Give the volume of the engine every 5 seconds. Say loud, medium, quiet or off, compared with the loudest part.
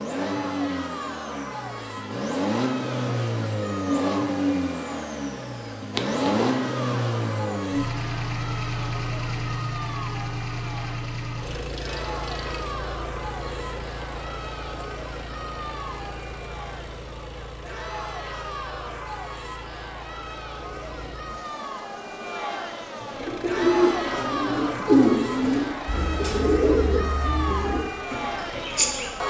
loud, loud, medium, quiet, quiet, quiet.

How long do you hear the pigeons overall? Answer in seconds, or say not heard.
6 s.